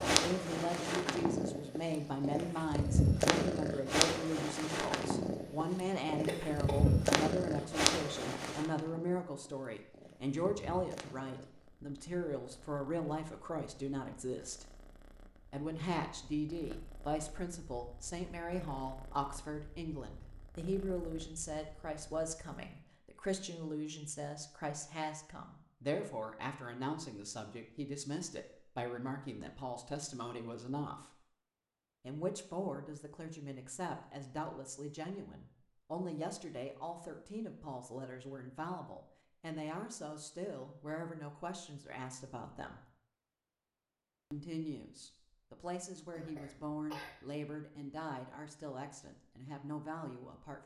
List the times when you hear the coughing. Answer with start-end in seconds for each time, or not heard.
6.2-7.1, 46.1-47.2.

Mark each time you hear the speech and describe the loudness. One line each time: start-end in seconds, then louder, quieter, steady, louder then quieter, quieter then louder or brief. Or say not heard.
0.0-14.7 steady
15.5-31.1 steady
32.0-42.8 steady
44.3-50.6 steady.